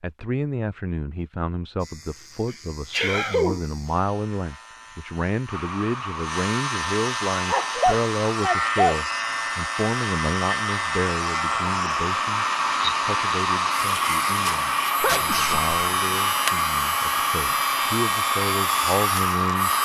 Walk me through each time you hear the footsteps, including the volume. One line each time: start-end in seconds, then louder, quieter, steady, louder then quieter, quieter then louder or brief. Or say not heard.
not heard.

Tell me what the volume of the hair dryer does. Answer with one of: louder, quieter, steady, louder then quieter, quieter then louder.
louder.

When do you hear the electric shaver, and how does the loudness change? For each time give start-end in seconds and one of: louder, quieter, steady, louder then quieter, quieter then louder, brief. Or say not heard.
1.8-19.8 louder.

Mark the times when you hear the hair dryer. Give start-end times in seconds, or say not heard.
5.5-19.8.